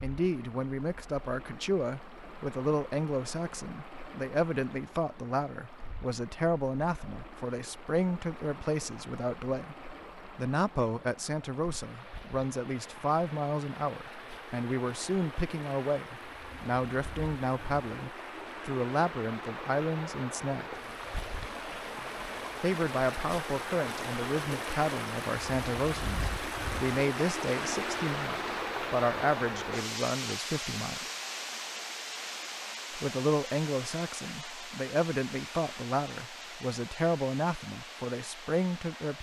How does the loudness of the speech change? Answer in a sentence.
The volume of the speech stays about the same.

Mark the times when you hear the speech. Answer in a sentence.
You can hear the speech from 0.0 to 9.8 s, from 10.3 to 20.8 s, from 22.6 to 31.1 s and from 33.0 to 39.1 s.